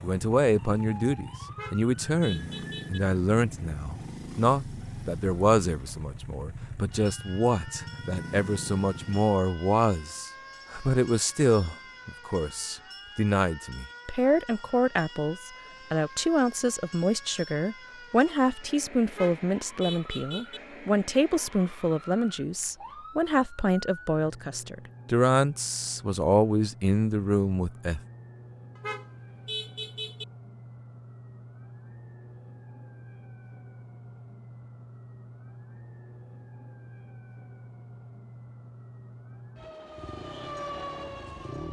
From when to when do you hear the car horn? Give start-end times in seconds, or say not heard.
1.5-3.0, 19.1-20.6, 28.8-30.2.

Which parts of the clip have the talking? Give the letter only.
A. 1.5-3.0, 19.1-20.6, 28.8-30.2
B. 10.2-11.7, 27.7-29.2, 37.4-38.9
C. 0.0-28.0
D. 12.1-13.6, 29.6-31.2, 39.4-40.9
C.